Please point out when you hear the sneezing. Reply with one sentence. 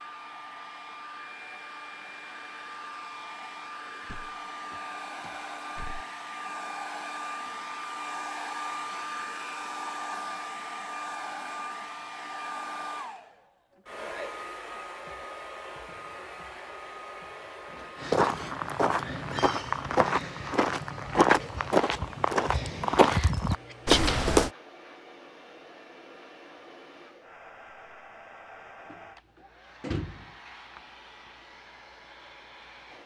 You can hear the sneezing from 22.6 to 24.2 s.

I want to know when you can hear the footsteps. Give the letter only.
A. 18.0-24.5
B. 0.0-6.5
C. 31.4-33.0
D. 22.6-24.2
A.